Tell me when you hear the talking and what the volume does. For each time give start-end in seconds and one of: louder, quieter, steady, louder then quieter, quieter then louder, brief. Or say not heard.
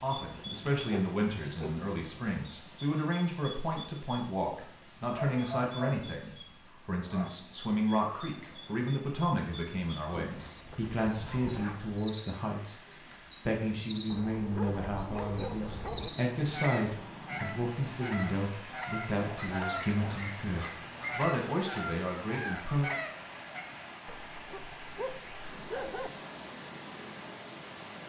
0.0-12.8 steady
13.4-22.9 steady.